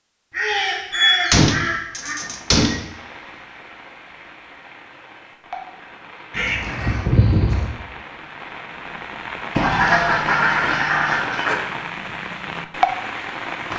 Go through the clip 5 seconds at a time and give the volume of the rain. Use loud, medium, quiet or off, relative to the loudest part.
quiet, medium, loud.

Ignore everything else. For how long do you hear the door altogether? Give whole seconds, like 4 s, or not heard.
4 s.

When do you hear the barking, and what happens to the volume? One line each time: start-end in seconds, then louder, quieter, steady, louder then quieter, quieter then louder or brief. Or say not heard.
not heard.